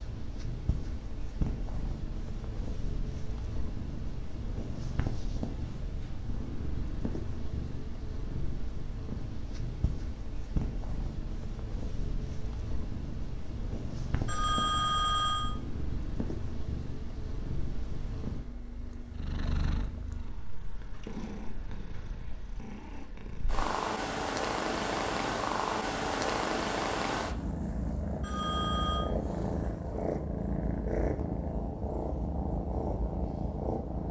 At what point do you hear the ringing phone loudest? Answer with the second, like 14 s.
15 s.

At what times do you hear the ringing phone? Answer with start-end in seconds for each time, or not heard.
14.2-15.5, 28.2-29.1.